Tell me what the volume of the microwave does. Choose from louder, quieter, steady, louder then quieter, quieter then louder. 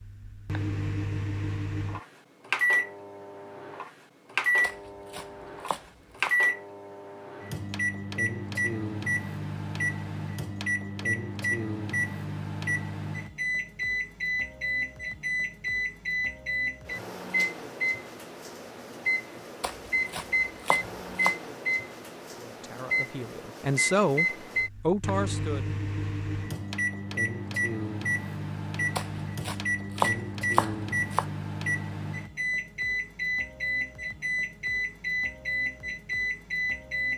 steady.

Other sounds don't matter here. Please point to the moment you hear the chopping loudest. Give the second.
30 s.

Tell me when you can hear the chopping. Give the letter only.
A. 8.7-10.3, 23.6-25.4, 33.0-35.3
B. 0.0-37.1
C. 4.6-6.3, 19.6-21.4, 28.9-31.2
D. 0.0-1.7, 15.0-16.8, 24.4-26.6
C.